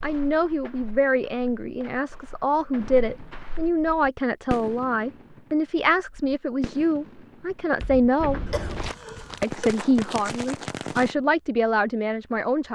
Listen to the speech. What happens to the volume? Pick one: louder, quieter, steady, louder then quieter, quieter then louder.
steady.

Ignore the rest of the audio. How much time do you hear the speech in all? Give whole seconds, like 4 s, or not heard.
12 s.